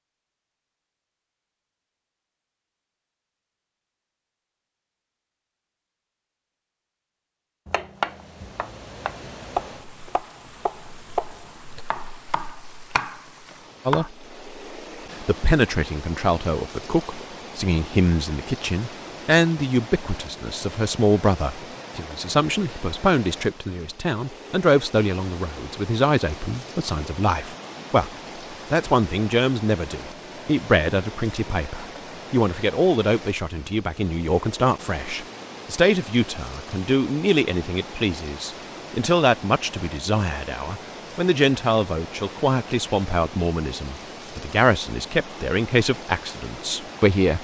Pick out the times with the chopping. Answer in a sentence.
You can hear the chopping from 7.7 to 14.1 s.